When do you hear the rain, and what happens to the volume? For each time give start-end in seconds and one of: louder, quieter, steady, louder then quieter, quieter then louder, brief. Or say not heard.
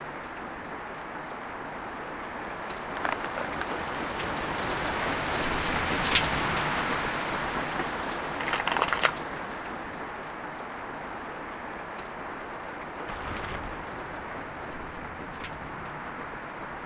0.0-16.8 louder then quieter.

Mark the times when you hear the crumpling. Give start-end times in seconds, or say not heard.
3.0-3.6, 8.4-9.2, 13.1-13.8.